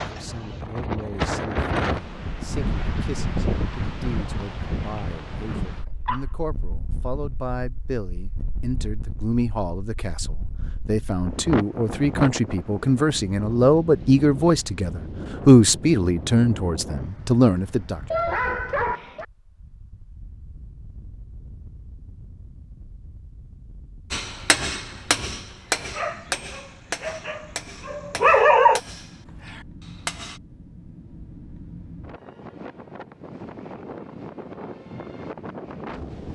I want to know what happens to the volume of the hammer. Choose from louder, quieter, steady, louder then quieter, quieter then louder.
quieter.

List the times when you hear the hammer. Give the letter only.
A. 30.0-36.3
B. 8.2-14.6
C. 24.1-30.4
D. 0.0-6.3
C.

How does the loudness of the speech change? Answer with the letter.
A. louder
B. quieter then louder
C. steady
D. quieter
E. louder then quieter
A.